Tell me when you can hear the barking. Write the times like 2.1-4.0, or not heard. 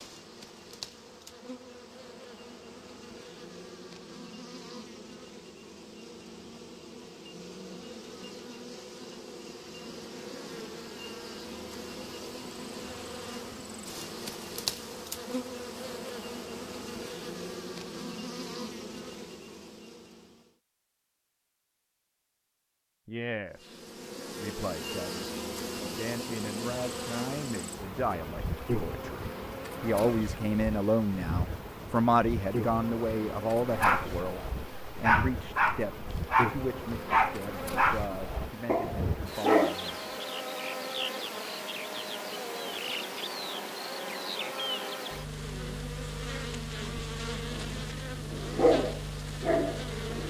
33.7-39.8, 47.5-50.2.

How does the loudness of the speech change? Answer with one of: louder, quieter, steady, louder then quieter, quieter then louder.
louder then quieter.